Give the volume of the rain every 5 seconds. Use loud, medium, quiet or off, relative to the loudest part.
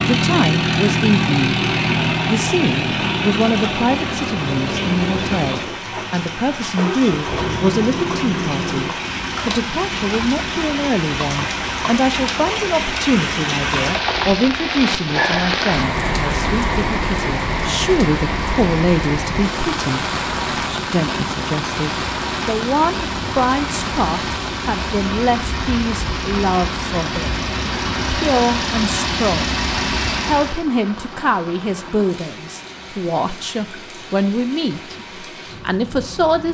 medium, medium, loud, loud, loud, medium, quiet, quiet.